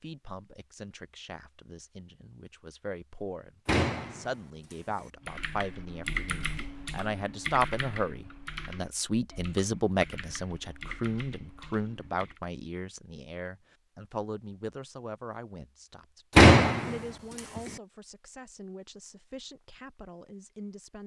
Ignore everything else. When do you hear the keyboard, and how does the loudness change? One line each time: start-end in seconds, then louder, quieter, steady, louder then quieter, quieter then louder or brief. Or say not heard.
5.2-12.4 quieter.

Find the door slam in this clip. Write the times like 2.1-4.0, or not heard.
3.6-4.9, 16.4-17.6.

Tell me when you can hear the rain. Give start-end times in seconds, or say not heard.
not heard.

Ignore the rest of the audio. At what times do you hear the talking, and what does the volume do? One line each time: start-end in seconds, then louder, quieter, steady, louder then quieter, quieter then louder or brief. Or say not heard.
0.0-21.0 louder then quieter.